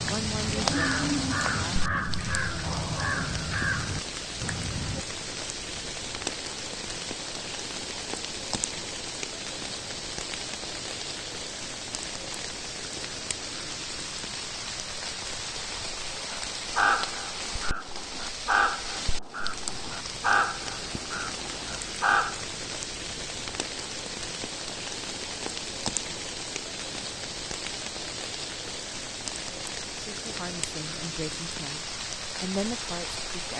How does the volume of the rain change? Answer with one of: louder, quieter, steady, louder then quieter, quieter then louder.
steady.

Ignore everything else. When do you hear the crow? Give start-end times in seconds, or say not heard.
0.0-5.0, 16.3-22.4.